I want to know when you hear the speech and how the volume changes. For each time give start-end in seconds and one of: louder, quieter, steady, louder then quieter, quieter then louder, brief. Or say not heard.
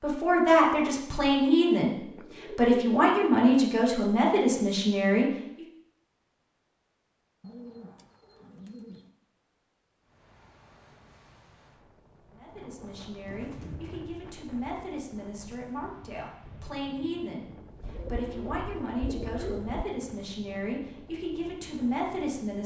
0.0-5.7 steady
12.3-22.6 louder.